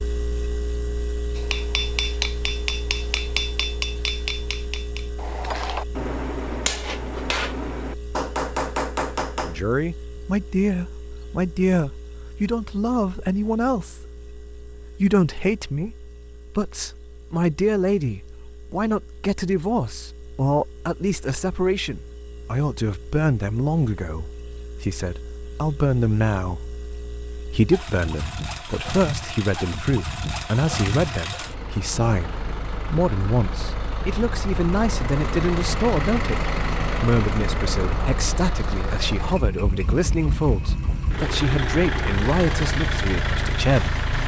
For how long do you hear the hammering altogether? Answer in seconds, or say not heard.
8 s.